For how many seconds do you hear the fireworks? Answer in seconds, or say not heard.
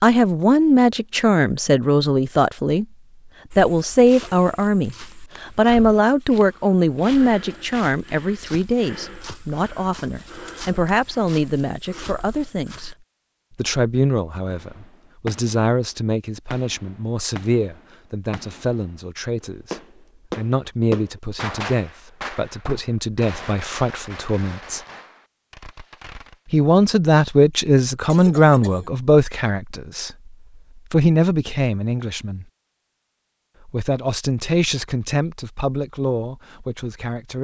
11 s.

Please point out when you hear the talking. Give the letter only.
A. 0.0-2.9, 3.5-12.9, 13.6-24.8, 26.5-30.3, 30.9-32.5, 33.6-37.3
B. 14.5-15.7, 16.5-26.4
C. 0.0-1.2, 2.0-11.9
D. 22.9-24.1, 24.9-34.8
A.